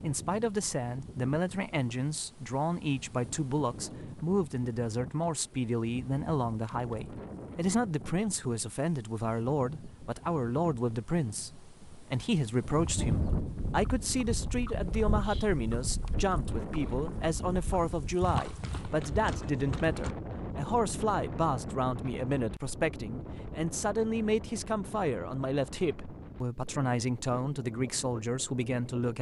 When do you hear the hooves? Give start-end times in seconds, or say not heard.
12.6-20.1.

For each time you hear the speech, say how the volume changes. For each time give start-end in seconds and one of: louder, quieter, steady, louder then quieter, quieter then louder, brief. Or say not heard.
0.0-29.1 steady.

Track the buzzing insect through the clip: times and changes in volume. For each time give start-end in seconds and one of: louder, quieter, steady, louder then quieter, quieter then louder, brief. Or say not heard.
not heard.